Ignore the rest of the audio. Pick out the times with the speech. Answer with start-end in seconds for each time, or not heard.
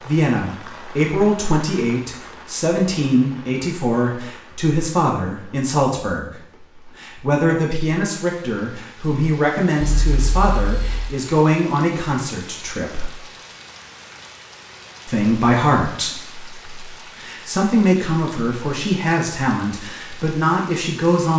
0.0-13.1, 15.1-21.3.